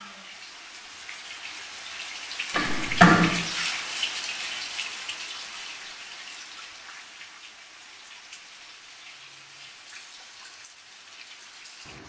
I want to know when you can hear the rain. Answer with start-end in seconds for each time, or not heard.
0.0-12.0.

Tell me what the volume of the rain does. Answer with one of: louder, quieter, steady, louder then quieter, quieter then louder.
louder then quieter.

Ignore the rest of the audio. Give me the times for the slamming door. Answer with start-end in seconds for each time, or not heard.
2.5-3.3.